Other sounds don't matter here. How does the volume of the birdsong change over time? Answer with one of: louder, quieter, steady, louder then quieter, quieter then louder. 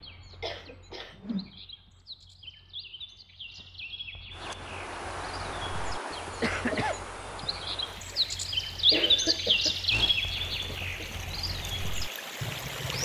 louder then quieter.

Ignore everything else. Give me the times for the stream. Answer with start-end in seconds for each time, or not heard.
4.3-13.0.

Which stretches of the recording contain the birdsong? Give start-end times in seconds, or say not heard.
0.0-13.0.